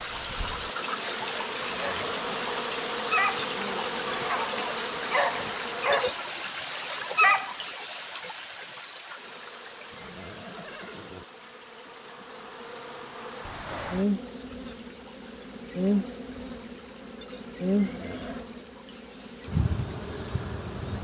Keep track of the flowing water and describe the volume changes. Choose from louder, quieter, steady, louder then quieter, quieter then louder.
quieter.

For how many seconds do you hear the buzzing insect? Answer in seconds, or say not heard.
18 s.